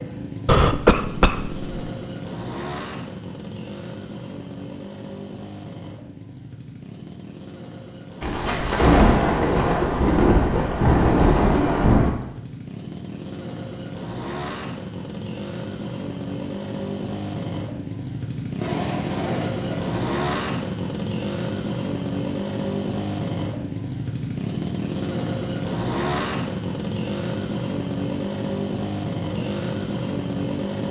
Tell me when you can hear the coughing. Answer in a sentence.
The coughing can be heard from 0.5 to 1.7 s.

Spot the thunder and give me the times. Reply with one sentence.
You can hear the thunder from 8.2 to 12.2 s and from 18.6 to 19.9 s.